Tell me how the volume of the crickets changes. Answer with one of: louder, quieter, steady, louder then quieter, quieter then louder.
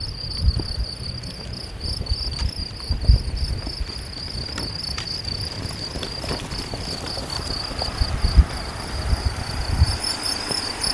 steady.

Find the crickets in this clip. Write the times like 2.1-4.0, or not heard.
0.0-10.8.